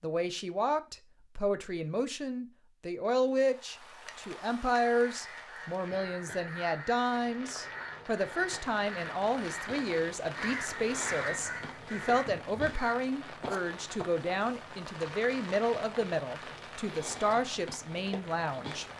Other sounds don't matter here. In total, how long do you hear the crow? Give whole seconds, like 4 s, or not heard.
8 s.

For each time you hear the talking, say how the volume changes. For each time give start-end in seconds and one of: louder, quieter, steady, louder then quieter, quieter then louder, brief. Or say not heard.
0.0-18.9 steady.